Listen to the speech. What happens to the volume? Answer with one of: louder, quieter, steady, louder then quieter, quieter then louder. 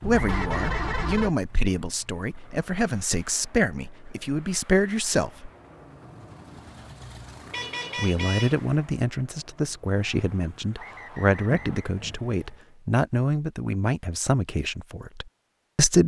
steady.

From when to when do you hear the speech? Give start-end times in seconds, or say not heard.
0.0-5.5, 8.0-16.0.